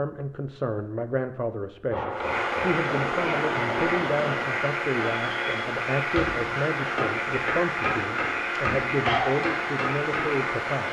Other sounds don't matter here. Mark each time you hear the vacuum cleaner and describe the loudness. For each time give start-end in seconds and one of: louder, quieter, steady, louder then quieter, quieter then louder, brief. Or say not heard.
2.1-10.8 steady.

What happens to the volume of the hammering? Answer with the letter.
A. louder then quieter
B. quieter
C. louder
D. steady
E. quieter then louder
D.